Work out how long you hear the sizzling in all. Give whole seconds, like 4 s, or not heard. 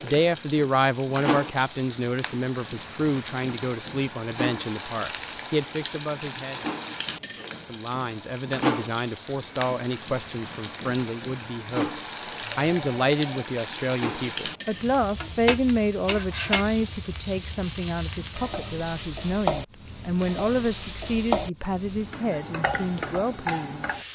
24 s.